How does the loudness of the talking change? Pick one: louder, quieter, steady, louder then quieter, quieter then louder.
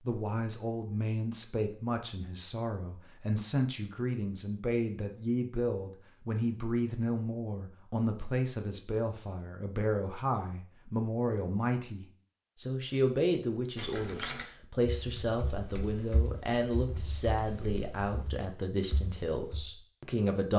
steady.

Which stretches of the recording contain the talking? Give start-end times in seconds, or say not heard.
0.1-20.5.